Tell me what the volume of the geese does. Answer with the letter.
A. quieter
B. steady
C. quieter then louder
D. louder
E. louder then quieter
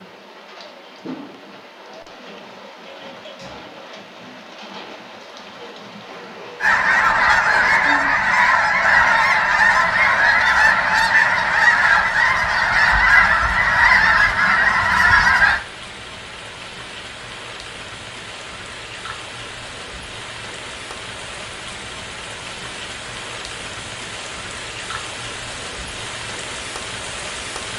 B.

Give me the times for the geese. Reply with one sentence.
The geese can be heard from 6.6 to 15.6 s.